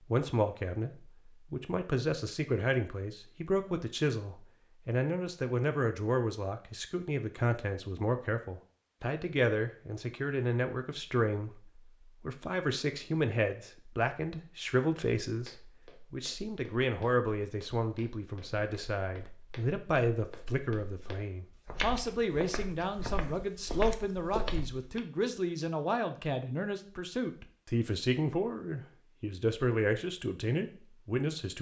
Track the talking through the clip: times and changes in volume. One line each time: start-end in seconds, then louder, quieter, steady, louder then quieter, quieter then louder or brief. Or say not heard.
0.0-31.5 steady.